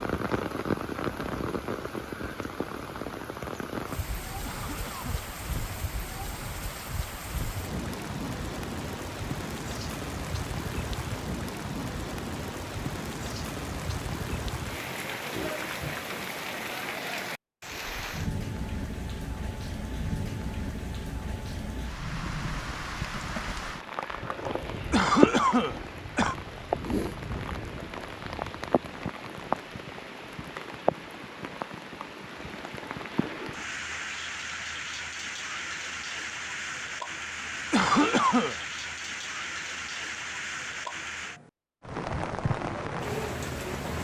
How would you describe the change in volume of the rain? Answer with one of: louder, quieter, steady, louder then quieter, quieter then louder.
steady.